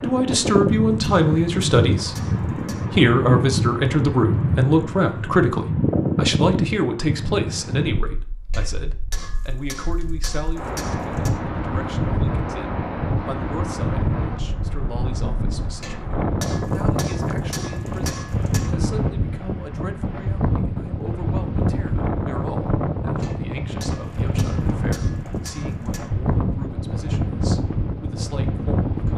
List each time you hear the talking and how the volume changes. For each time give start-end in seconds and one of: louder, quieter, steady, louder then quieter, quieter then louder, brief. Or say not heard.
0.0-2.1 brief
2.9-29.1 quieter.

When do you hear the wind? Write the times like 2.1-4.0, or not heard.
0.0-29.1.